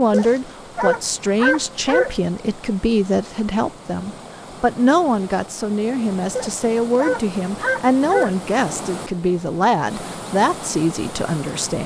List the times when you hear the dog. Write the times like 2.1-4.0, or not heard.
0.1-2.1, 6.3-8.4.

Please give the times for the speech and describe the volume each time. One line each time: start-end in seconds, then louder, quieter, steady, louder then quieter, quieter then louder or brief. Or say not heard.
0.0-11.8 steady.